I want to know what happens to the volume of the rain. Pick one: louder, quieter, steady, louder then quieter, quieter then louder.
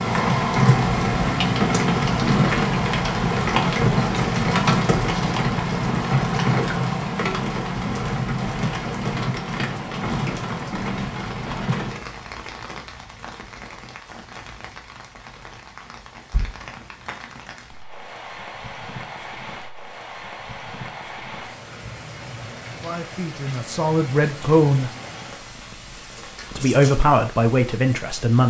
quieter.